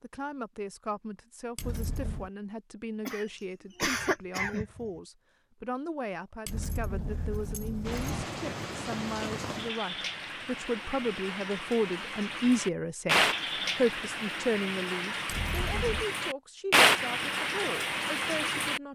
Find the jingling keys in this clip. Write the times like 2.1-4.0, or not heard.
1.6-2.3, 6.5-8.3, 15.2-16.1.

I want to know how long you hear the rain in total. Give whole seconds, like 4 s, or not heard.
11 s.